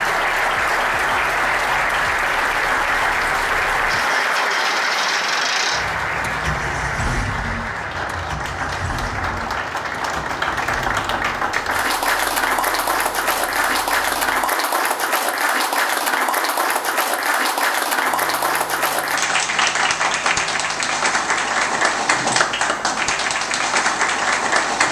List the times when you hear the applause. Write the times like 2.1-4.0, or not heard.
0.0-24.8.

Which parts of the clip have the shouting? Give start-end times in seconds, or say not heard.
not heard.